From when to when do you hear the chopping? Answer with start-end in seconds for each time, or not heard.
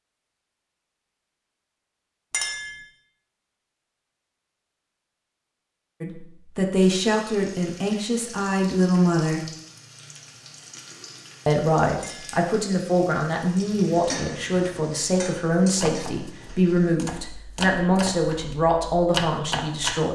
15.8-20.0.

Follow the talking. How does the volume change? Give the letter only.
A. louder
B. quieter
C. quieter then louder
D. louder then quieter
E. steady
E.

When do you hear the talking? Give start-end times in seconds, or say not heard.
6.0-9.4, 11.4-20.0.